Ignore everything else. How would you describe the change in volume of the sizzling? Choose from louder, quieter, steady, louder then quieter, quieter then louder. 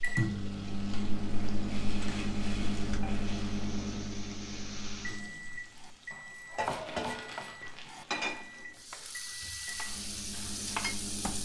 louder.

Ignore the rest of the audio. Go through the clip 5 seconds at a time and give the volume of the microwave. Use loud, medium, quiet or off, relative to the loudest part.
loud, medium, medium.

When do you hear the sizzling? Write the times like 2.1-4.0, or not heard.
0.0-11.4.